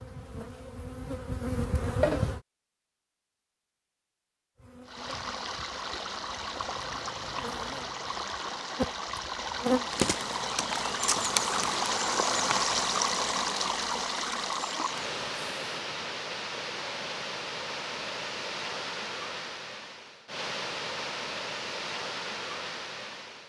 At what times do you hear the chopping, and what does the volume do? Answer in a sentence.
The chopping can't be heard in this clip.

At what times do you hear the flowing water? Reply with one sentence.
You can hear the flowing water from 4.8 to 23.4 s.